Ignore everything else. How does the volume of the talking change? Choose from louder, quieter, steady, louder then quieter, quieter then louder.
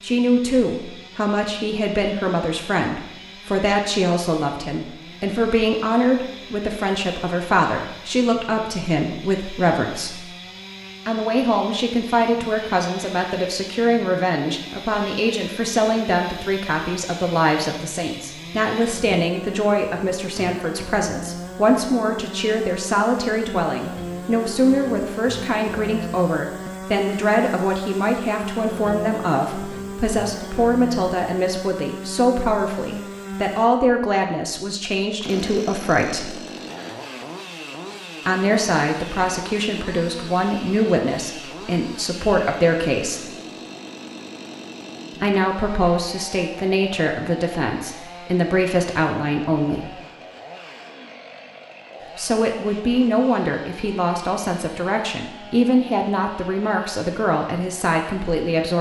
steady.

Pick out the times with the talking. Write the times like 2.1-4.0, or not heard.
0.0-10.2, 11.1-36.4, 38.2-43.3, 45.2-50.0, 52.1-58.7.